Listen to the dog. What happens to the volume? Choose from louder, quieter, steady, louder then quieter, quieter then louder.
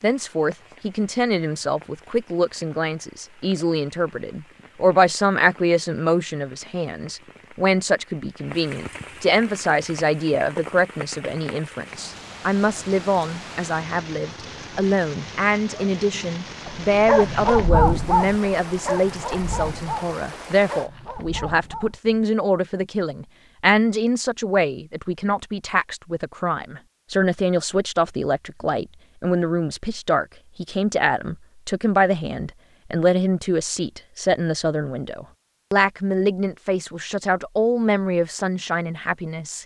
quieter.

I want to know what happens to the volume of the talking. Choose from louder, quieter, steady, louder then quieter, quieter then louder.
steady.